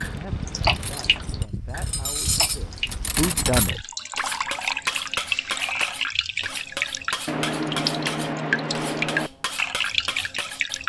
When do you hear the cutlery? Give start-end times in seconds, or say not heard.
0.0-10.8.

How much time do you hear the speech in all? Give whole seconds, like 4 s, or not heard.
4 s.